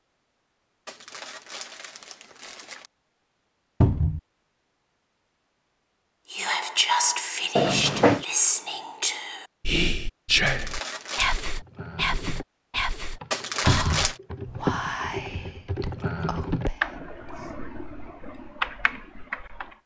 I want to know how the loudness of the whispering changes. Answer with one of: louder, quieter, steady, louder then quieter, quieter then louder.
quieter.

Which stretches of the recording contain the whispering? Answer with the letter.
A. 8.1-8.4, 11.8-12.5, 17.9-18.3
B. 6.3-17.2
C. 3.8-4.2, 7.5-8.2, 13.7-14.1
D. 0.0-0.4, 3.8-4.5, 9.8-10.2
B.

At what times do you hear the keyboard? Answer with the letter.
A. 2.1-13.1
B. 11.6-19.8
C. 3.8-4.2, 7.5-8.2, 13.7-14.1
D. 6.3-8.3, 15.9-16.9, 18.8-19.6
B.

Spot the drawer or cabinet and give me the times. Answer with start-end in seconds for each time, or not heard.
3.8-4.2, 7.5-8.2, 13.7-14.1.